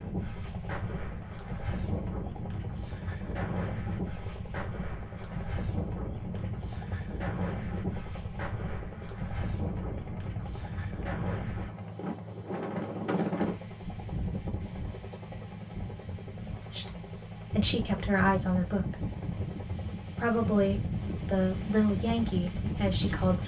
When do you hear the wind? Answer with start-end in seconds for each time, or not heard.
0.0-23.4.